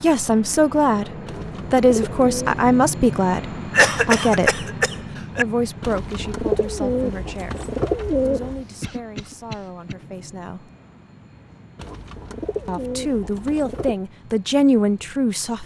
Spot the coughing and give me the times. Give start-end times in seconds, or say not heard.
3.7-5.5, 8.8-9.9.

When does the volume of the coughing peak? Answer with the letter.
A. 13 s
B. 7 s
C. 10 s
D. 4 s
D.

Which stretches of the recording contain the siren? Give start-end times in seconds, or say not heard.
not heard.